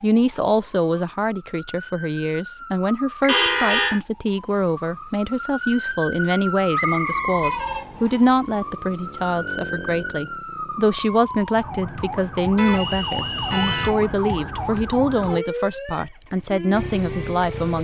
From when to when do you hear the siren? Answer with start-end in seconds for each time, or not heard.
0.0-17.7.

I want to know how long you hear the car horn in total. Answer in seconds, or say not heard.
3 s.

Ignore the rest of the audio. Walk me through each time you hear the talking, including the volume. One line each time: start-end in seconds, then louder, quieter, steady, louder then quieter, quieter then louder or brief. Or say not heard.
0.0-17.7 steady.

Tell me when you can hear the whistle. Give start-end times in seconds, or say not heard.
3.2-4.0, 6.7-8.2, 12.7-13.8.